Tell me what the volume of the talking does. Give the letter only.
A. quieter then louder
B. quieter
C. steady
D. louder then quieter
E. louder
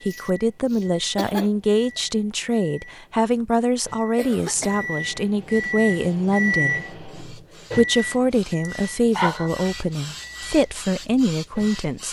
C.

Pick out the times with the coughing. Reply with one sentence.
You can hear the coughing from 0.1 to 2.0 s, from 4.2 to 5.0 s and from 8.7 to 9.5 s.